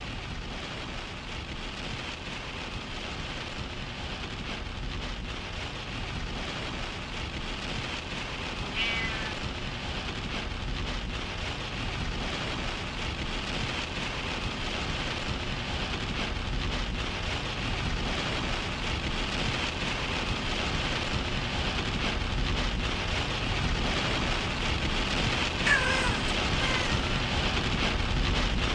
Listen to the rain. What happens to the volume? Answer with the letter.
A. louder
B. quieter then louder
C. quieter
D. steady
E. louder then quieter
A.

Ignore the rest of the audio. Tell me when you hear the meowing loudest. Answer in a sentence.
The loudest moment of the meowing is at 26 seconds.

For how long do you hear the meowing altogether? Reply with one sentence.
The meowing can be heard for 2 seconds in total.